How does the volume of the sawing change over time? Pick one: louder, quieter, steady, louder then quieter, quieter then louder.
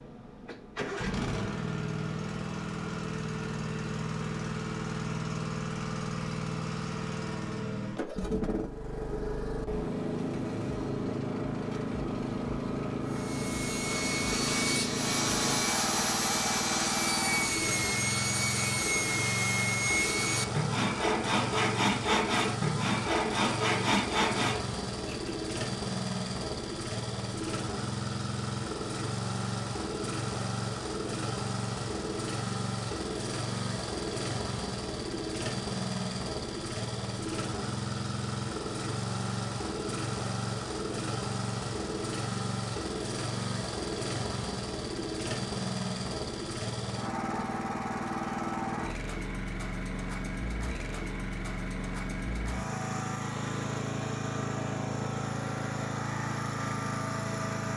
steady.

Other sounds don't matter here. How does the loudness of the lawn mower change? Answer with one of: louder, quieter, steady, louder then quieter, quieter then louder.
steady.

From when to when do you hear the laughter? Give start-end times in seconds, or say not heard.
not heard.